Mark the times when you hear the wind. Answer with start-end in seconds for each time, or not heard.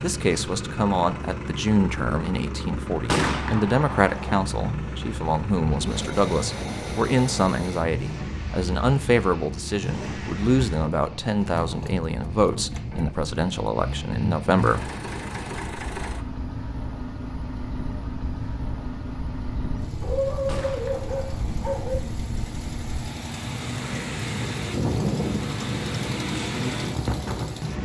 5.7-27.8.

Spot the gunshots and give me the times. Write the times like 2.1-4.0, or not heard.
3.0-4.4, 20.4-21.6.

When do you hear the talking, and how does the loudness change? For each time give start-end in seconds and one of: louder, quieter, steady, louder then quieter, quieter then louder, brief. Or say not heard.
0.0-14.9 steady.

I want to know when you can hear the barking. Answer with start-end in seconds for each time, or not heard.
20.0-21.9.